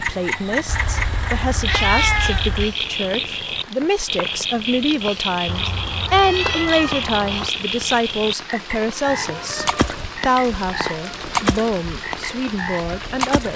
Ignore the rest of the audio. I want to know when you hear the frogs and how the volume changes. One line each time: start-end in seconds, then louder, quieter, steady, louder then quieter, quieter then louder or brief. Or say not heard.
0.0-13.5 steady.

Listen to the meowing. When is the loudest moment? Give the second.
2 s.